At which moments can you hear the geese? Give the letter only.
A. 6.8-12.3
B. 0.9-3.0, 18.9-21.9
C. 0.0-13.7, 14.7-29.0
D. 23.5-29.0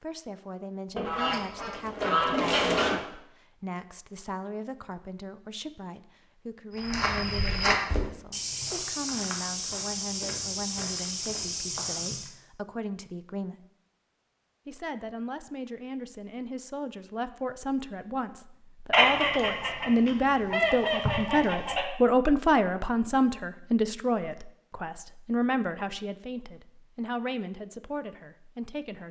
B.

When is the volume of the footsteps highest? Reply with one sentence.
The volume of the footsteps peaks at 8 seconds.